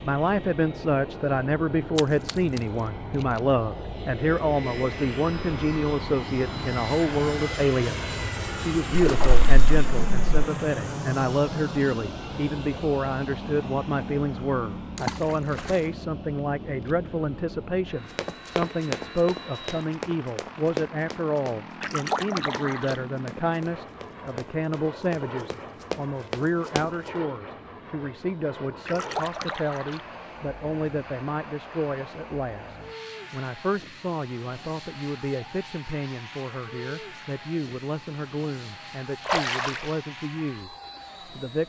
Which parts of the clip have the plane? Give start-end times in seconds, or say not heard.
0.0-41.6.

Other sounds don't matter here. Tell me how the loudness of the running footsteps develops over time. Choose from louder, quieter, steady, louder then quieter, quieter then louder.
quieter then louder.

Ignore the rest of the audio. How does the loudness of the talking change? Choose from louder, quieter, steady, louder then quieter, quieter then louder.
quieter.